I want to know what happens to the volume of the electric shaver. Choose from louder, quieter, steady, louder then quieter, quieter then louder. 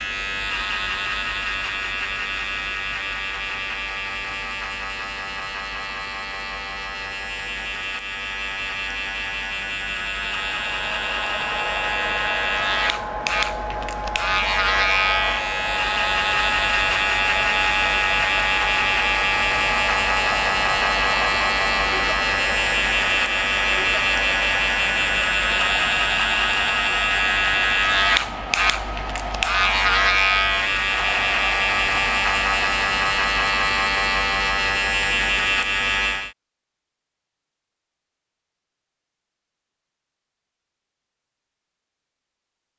louder.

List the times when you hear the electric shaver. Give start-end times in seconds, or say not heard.
0.0-36.3.